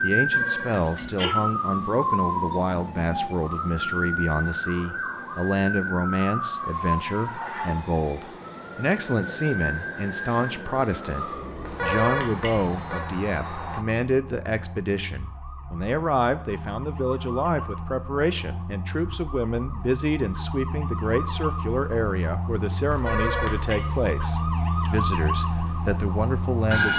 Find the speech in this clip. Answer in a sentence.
You can hear the speech from 0.0 to 26.9 s.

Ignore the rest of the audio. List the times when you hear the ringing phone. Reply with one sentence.
You can hear the ringing phone from 0.1 to 1.2 s, from 11.7 to 13.1 s and from 22.9 to 24.0 s.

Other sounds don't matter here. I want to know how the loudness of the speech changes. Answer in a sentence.
The volume of the speech stays about the same.